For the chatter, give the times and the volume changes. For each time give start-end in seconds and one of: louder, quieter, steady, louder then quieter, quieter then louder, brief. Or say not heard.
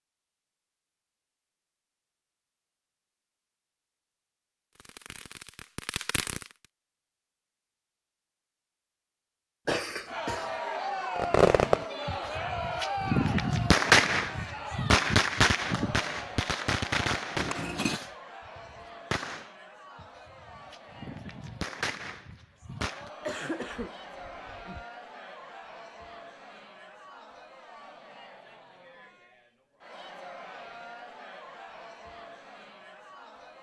10.1-33.5 quieter.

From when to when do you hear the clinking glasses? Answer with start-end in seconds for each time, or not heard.
17.4-18.0.